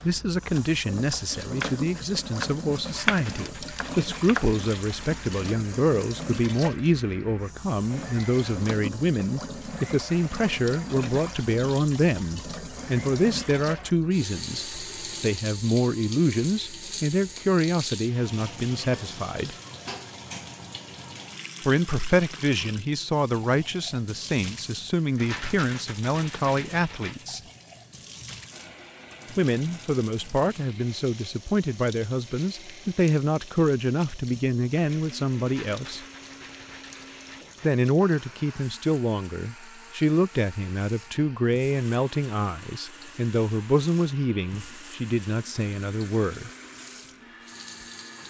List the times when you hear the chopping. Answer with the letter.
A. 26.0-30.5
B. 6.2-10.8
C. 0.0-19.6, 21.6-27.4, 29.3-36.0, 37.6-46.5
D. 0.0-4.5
D.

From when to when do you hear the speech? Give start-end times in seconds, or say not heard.
0.0-19.6, 21.6-27.4, 29.3-36.0, 37.6-46.5.